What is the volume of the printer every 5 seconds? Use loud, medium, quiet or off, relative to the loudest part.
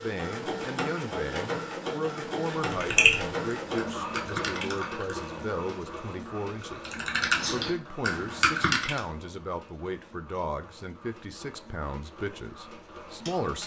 loud, medium, quiet.